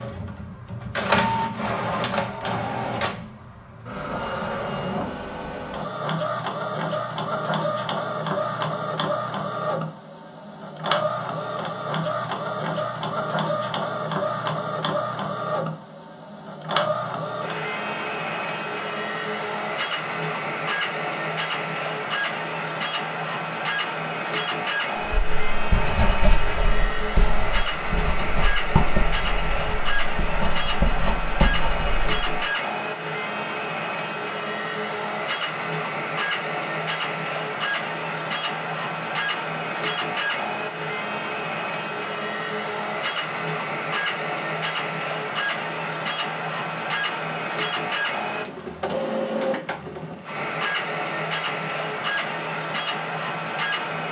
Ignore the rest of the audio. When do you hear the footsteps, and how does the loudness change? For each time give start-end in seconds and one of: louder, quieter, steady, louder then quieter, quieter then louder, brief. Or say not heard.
not heard.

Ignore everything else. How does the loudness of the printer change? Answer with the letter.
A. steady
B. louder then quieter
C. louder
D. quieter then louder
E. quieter
A.